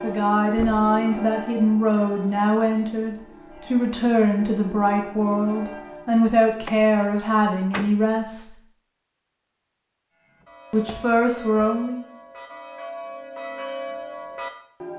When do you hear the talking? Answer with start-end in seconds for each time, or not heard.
0.0-8.6, 10.7-12.1.